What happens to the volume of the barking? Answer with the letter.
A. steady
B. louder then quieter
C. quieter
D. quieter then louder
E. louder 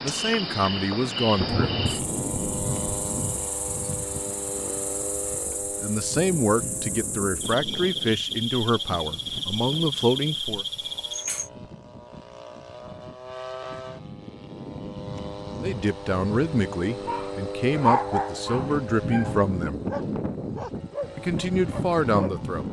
C.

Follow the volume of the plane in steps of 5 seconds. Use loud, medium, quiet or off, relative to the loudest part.
loud, medium, medium, loud, loud.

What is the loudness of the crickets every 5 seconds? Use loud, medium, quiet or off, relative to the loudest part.
loud, loud, loud, off, off.